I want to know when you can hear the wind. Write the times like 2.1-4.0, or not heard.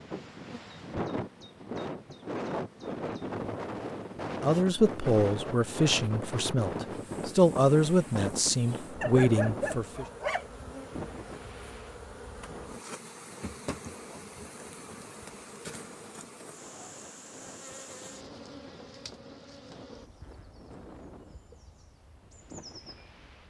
0.0-23.4.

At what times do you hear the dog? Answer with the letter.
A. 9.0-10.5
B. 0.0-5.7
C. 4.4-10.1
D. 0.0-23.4
A.